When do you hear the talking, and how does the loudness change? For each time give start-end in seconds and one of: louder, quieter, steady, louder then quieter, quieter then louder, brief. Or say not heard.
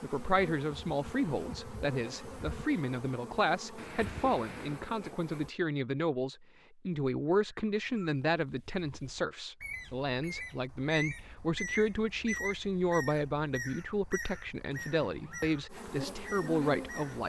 0.0-17.2 steady.